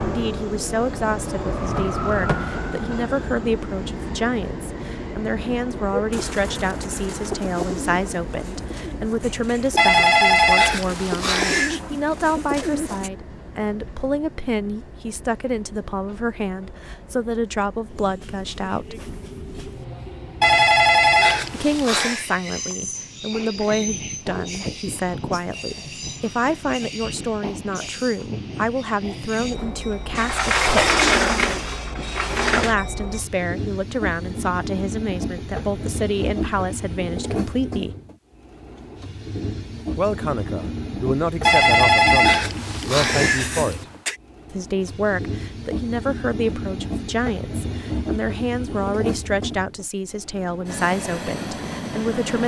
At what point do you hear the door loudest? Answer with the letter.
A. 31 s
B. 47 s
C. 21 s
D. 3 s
A.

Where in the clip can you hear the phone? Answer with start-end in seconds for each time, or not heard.
9.8-11.8, 20.4-22.2, 41.5-44.1.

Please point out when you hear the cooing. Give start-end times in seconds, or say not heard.
5.9-13.1.